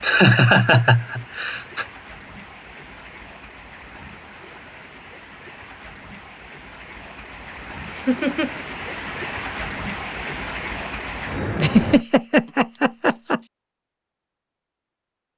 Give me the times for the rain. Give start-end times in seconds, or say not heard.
0.0-12.1.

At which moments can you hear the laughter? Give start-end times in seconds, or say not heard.
0.0-1.9, 7.8-8.6, 11.6-13.4.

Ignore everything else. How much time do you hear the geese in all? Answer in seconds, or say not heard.
not heard.